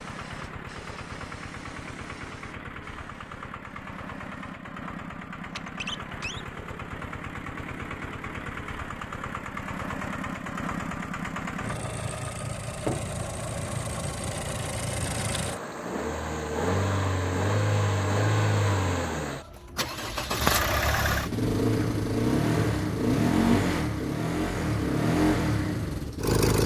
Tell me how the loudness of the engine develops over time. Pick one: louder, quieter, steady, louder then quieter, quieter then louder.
louder.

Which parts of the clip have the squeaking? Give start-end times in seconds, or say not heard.
5.5-6.5.